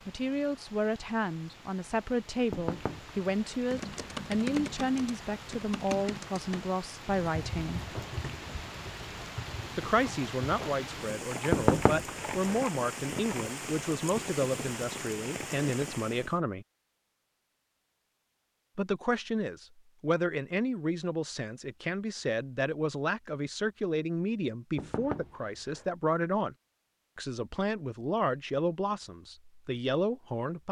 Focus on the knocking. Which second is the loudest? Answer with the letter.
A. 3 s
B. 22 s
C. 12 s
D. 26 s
C.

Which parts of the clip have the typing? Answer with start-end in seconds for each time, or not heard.
3.6-13.5.